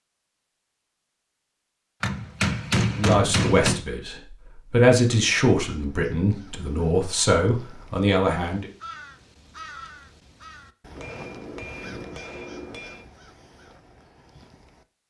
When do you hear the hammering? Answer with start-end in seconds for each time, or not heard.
2.0-3.9, 10.9-13.1.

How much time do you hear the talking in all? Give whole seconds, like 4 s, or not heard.
6 s.